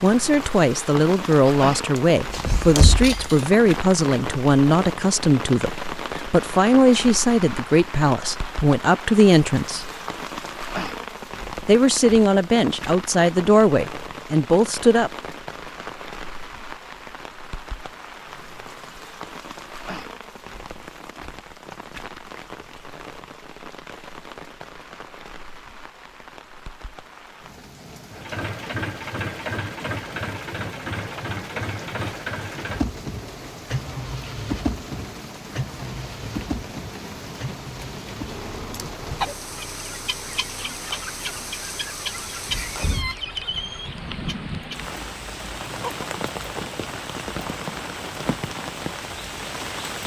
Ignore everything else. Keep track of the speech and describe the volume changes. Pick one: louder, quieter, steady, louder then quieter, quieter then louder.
steady.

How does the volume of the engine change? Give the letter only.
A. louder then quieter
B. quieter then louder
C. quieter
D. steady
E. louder
C.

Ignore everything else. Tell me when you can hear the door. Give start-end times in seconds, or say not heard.
2.3-3.4, 42.4-43.0.